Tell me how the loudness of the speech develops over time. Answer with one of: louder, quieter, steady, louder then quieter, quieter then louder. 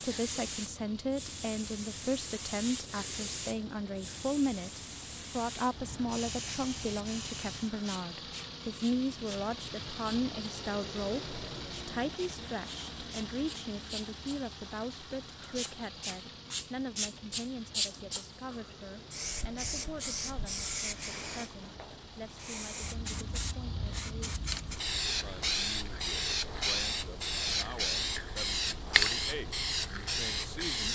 quieter.